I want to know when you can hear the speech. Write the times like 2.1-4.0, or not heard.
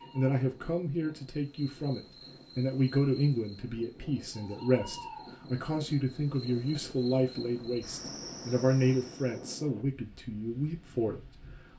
0.1-11.7.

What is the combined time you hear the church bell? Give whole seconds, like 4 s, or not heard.
not heard.